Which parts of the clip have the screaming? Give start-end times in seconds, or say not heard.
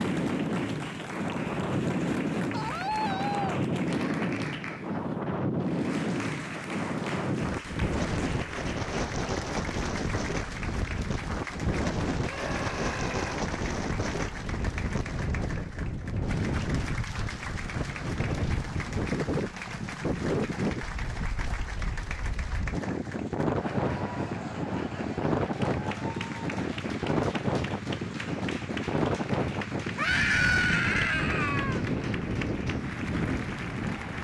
2.5-3.6, 12.2-13.4, 29.9-31.8.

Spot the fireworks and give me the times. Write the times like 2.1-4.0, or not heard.
not heard.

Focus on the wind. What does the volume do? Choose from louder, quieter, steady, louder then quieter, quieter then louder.
steady.